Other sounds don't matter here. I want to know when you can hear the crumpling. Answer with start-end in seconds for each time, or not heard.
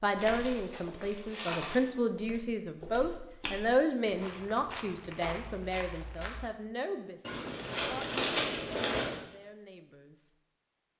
0.1-1.8, 7.2-9.2.